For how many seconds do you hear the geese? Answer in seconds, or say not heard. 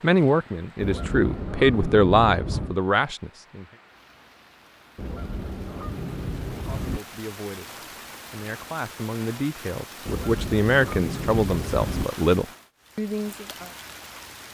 6 s.